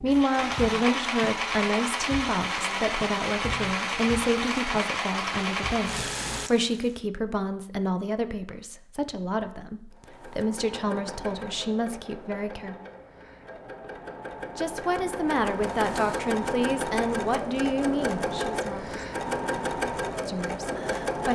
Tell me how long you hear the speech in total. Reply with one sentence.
The speech can be heard for 18 seconds in total.